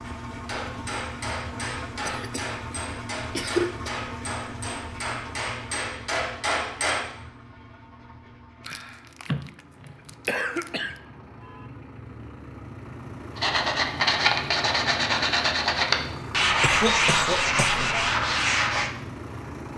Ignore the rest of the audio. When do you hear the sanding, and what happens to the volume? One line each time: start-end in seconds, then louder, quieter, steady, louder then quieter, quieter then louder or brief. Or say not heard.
13.3-18.9 steady.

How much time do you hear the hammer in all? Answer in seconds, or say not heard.
7 s.